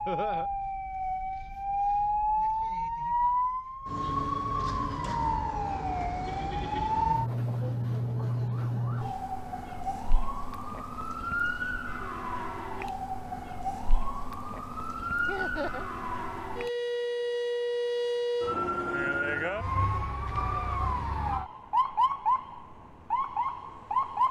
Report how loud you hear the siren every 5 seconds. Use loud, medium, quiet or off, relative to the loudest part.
loud, loud, medium, loud, loud.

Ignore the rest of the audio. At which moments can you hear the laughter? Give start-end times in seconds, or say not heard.
0.1-0.5, 15.2-15.8.